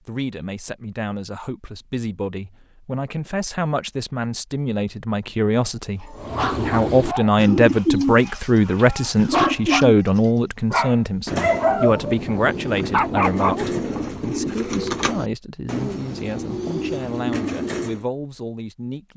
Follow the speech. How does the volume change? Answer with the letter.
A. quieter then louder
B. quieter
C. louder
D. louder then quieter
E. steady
D.